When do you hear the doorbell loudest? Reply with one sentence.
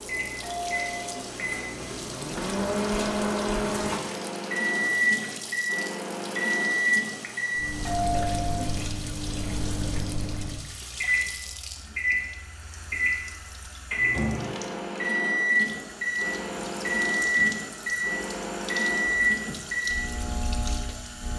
The volume of the doorbell peaks at 8 seconds.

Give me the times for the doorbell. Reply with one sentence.
You can hear the doorbell from 0.4 to 1.2 s, from 7.8 to 8.7 s and from 19.3 to 19.8 s.